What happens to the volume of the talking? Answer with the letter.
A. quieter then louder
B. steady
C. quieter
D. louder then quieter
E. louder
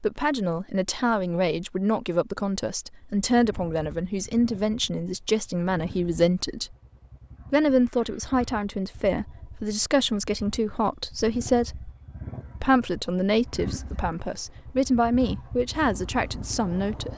B.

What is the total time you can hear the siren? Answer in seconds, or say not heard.
not heard.